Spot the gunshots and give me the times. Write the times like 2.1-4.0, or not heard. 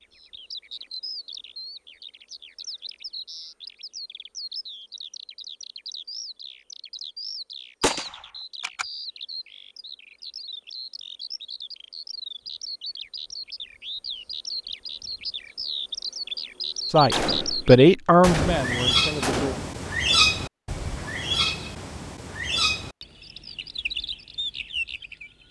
7.8-8.8, 17.1-19.8.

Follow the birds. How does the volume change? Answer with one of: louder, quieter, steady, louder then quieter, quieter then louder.
louder.